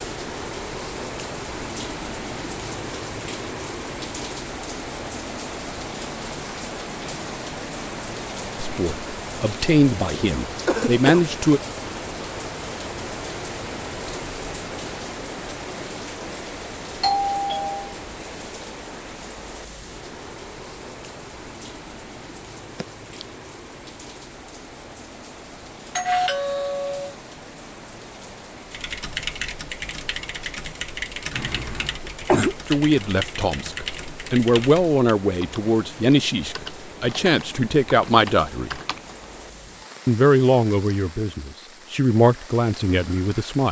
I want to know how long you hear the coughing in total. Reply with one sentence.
The coughing can be heard for 2 seconds in total.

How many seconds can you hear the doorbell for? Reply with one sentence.
The doorbell can be heard for 2 seconds in total.